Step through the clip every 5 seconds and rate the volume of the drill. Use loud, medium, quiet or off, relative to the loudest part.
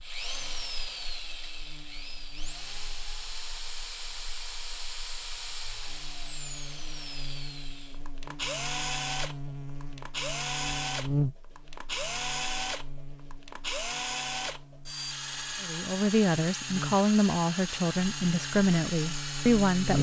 medium, loud, loud, loud.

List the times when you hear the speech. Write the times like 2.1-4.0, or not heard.
15.6-19.9.